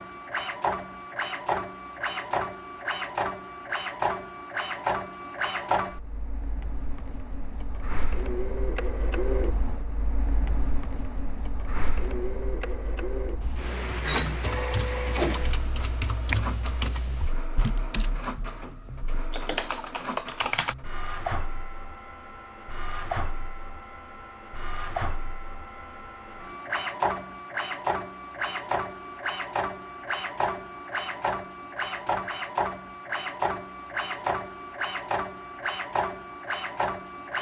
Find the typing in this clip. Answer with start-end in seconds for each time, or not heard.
13.4-20.8.